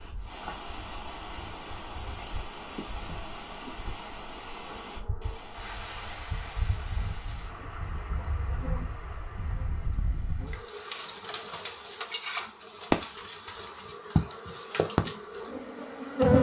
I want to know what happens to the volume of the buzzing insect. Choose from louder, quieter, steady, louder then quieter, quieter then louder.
louder.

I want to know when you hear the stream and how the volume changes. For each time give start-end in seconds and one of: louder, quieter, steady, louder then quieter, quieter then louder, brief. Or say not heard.
0.0-16.2 quieter.